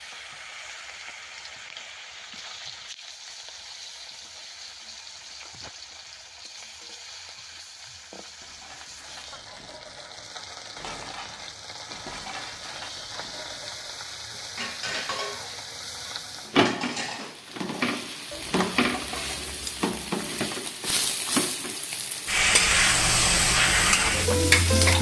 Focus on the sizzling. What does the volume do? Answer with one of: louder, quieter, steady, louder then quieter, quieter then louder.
louder.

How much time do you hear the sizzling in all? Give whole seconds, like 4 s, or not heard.
25 s.